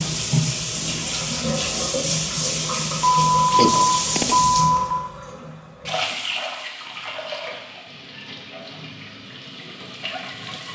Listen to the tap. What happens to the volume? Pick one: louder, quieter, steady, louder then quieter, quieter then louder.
quieter.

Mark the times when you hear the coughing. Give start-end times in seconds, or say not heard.
3.5-4.3.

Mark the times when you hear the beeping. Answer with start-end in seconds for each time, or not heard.
3.0-5.0.